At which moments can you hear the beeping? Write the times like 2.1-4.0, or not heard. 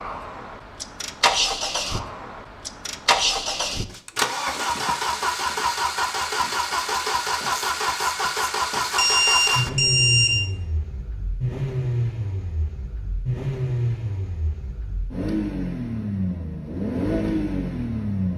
8.9-10.3.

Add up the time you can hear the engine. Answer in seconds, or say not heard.
18 s.